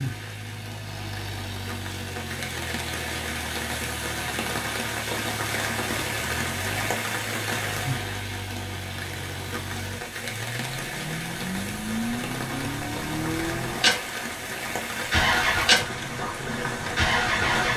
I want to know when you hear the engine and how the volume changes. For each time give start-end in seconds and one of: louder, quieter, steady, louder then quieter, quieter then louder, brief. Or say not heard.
0.0-17.7 louder.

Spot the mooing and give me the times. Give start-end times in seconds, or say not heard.
not heard.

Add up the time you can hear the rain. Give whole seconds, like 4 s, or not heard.
18 s.